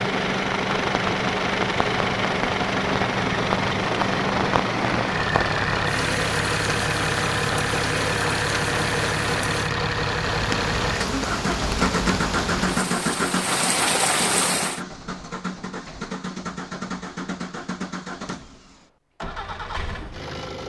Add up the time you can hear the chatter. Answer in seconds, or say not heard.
not heard.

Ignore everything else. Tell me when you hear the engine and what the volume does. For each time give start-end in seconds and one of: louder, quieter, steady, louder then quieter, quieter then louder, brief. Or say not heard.
0.0-20.6 quieter.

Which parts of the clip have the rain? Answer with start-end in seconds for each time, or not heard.
0.2-14.8.